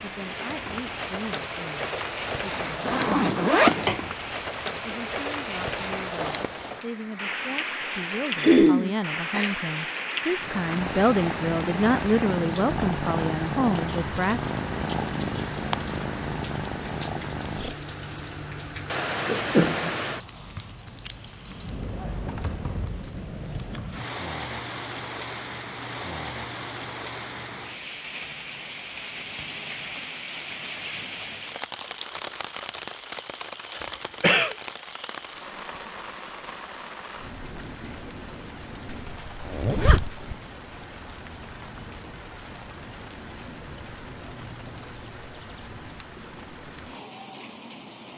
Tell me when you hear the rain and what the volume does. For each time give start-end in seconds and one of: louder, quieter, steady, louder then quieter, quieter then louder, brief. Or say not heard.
0.0-48.1 quieter.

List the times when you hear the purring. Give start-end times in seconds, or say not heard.
10.7-17.8.